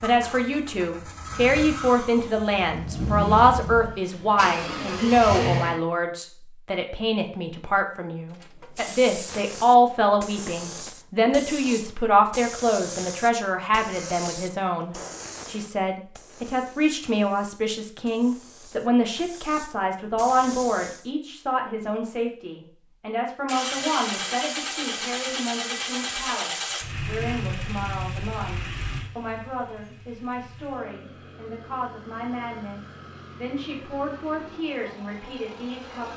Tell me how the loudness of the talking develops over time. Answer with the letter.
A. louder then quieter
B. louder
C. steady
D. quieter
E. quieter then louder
D.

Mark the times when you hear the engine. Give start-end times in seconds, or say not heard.
0.0-5.8, 23.4-36.1.